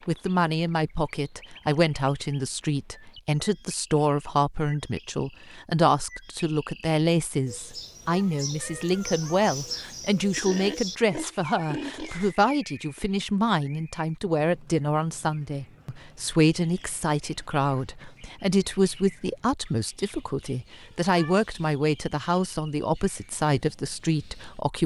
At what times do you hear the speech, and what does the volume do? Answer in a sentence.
You can hear the speech from 0.1 to 24.8 s, at a steady volume.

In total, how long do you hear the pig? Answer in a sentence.
The pig can be heard for 2 seconds in total.